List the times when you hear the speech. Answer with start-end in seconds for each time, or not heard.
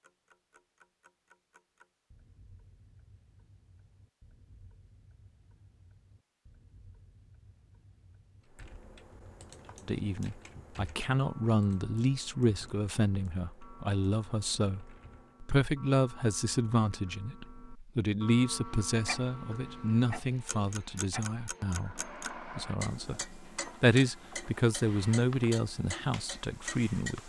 9.8-27.2.